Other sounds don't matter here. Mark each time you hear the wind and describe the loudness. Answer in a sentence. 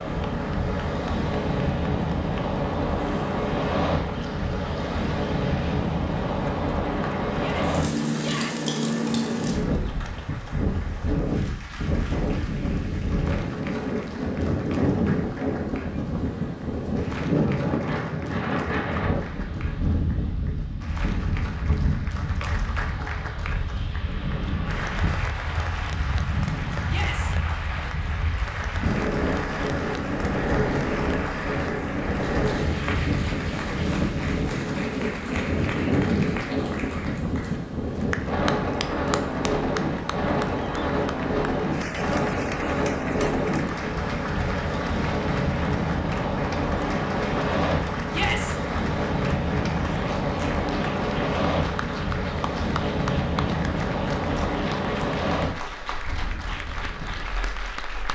You can hear the wind from 0.0 to 58.1 s, at a steady volume.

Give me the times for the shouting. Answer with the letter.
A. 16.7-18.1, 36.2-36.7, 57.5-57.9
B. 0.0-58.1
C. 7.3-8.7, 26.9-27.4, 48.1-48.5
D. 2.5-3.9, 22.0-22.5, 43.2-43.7
C.